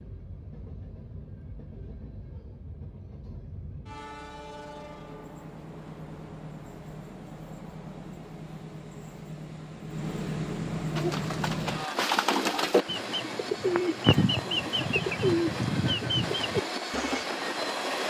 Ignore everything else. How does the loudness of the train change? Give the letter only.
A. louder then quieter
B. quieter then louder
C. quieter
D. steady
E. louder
E.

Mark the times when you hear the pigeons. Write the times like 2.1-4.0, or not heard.
10.9-17.2.